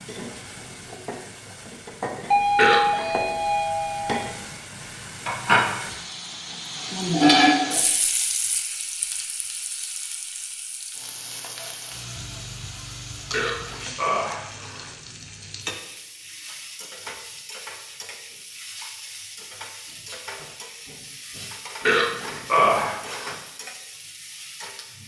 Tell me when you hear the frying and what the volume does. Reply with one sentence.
The frying can be heard from 0.0 to 25.0 s, getting louder then quieter.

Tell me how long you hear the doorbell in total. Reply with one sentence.
The doorbell can be heard for 2 seconds in total.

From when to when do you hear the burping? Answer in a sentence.
You can hear the burping from 2.5 to 3.1 s, from 13.3 to 14.9 s and from 21.9 to 23.4 s.